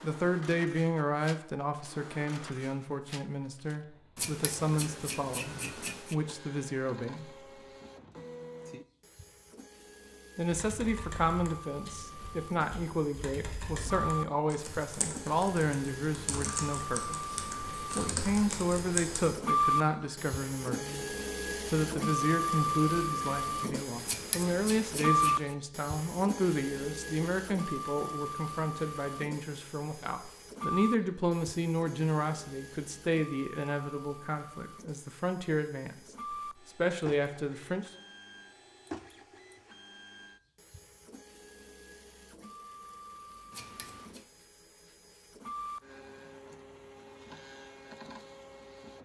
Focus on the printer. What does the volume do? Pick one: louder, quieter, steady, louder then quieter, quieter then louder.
louder then quieter.